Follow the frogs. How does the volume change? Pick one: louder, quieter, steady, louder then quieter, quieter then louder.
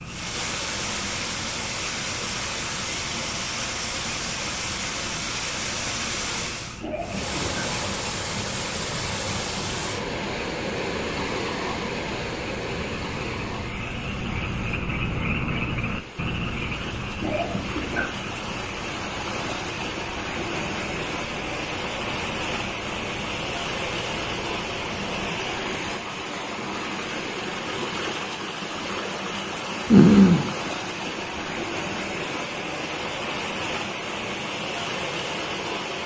louder then quieter.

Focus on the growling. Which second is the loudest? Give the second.
30 s.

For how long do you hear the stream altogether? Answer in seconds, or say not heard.
36 s.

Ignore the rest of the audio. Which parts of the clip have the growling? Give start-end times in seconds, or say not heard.
6.8-7.7, 17.2-18.1, 29.9-30.5.